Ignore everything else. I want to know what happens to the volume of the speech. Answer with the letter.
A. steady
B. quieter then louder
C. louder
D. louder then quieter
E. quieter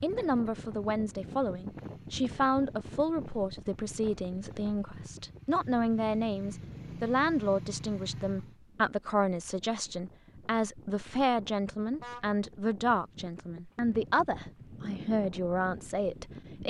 A.